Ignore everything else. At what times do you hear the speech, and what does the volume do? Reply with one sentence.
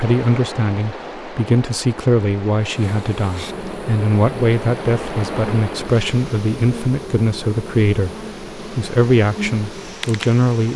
You can hear the speech from 0.0 to 10.7 s, at a steady volume.